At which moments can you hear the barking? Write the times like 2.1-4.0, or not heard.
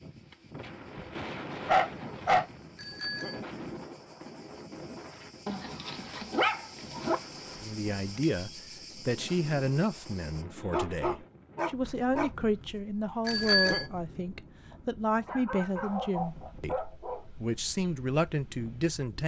1.5-2.5, 5.5-7.2, 10.5-12.3, 14.7-17.2.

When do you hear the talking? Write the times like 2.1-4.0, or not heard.
7.6-19.2.